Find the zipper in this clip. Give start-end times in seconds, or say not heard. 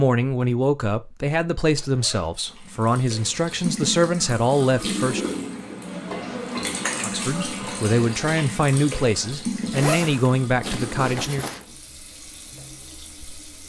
1.8-2.4, 6.1-6.5, 9.7-11.7.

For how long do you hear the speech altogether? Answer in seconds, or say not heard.
10 s.